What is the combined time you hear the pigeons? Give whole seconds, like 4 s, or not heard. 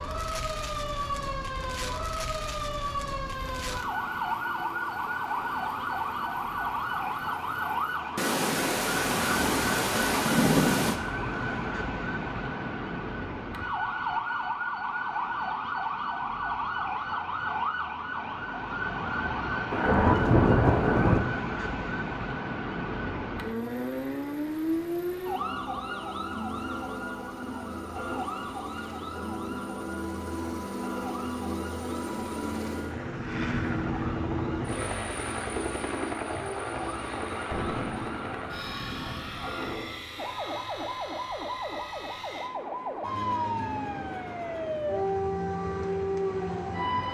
not heard.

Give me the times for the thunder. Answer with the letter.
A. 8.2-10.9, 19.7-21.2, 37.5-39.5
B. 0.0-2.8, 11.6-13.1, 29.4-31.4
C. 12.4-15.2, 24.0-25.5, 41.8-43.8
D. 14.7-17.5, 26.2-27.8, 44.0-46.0
A.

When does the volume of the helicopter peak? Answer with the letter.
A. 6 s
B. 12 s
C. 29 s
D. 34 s
D.